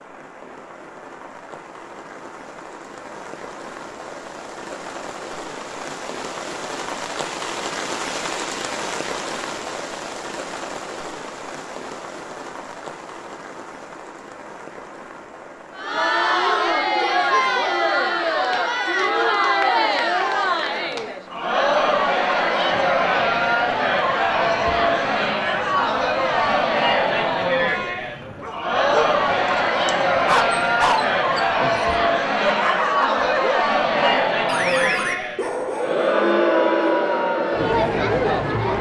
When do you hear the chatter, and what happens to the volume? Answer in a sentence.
The chatter can be heard from 15.8 to 38.7 s, at a steady volume.